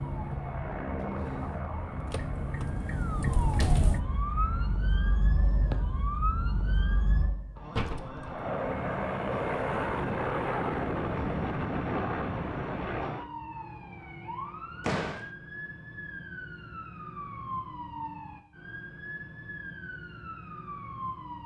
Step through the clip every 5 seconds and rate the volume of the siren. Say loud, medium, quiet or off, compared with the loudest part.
loud, loud, medium, medium, medium.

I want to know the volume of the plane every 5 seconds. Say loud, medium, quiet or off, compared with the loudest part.
medium, loud, loud, off, off.